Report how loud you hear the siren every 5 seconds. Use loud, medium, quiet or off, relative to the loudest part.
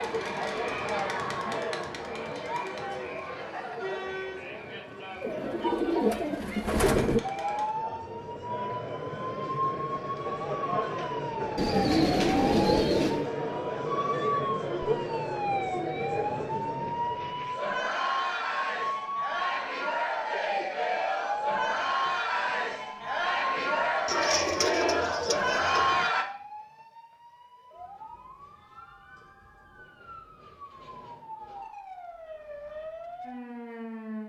off, loud, loud, loud, loud, quiet, medium.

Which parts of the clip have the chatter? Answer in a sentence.
You can hear the chatter from 0.0 to 26.2 s.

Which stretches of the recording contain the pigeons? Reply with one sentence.
The pigeons can be heard from 5.2 to 7.2 s, from 11.6 to 13.3 s and from 24.1 to 26.1 s.